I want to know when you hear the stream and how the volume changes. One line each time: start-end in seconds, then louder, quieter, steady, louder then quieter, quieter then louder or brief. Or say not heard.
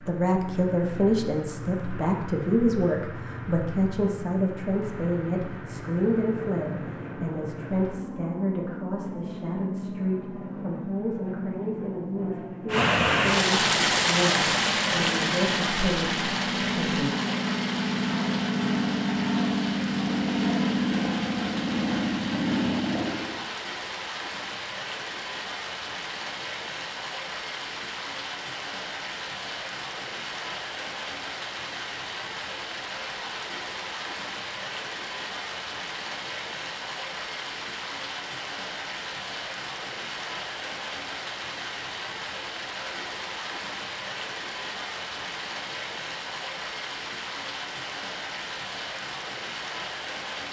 12.7-50.4 quieter.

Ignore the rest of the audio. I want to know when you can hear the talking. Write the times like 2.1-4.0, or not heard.
0.1-17.1.